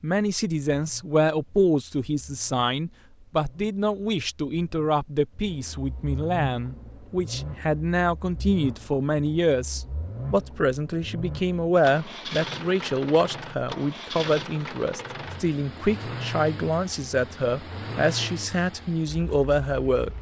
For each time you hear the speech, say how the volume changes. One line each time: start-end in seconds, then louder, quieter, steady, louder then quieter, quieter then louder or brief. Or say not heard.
0.0-20.1 steady.